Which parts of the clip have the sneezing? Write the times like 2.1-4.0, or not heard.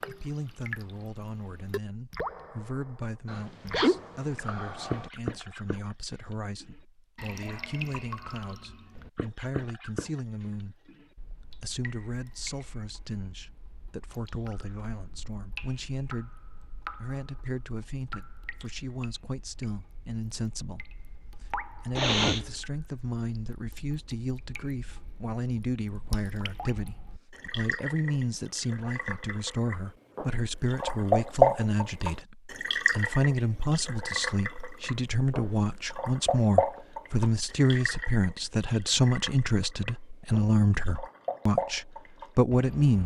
3.2-5.1, 21.9-22.5.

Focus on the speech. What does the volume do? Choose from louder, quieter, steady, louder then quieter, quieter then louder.
louder.